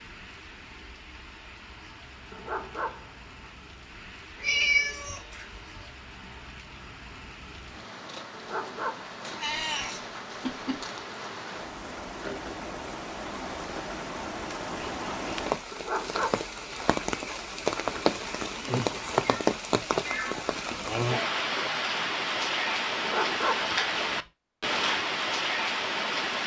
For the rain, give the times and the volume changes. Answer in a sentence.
The rain can be heard from 0.0 to 26.4 s, getting louder.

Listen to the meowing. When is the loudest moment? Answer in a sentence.
The volume of the meowing peaks at 5 seconds.